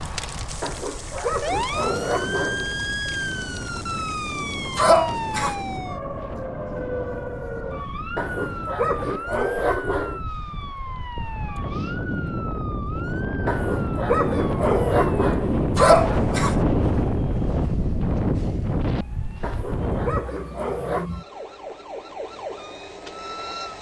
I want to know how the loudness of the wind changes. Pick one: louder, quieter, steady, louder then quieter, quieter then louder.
louder.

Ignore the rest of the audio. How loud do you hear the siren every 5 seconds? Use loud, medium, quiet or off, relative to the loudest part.
loud, loud, medium, medium, medium.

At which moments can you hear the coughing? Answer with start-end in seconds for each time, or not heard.
4.8-5.5, 15.8-16.6.